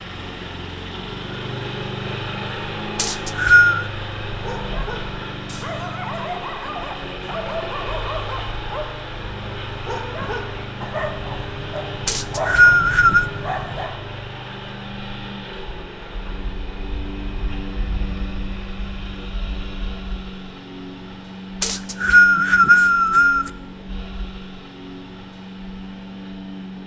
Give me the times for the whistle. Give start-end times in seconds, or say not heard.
3.0-3.9, 12.1-13.2, 21.6-23.5.